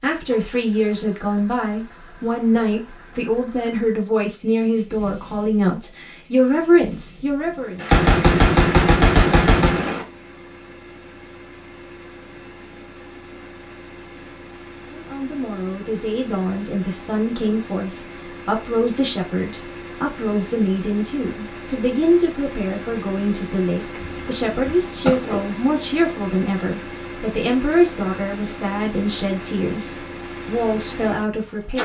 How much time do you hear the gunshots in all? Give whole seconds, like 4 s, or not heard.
4 s.